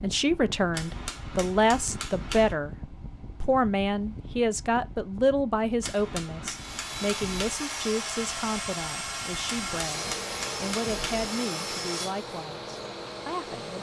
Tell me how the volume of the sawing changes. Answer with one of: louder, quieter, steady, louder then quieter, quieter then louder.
quieter.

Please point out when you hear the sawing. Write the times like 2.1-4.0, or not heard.
6.5-13.7.